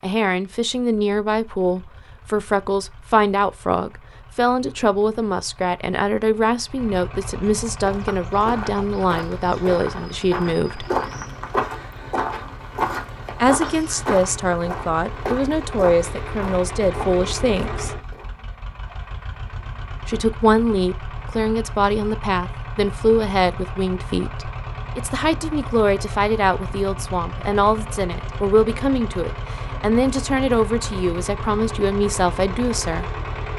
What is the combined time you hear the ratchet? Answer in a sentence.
You can't hear the ratchet here.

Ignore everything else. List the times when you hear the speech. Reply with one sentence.
You can hear the speech from 0.0 to 10.8 s, from 13.4 to 17.9 s and from 20.1 to 33.0 s.